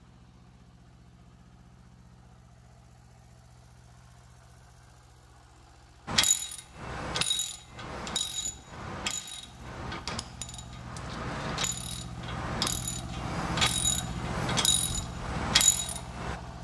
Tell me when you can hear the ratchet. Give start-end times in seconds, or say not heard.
6.0-16.4.